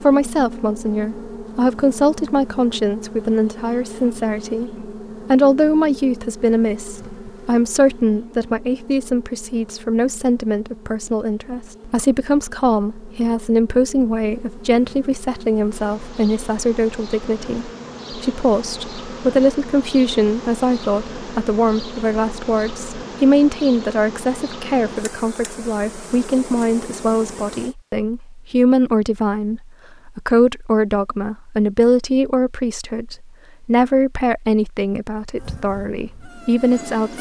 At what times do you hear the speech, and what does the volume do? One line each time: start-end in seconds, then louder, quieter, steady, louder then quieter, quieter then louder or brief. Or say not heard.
0.0-37.1 steady.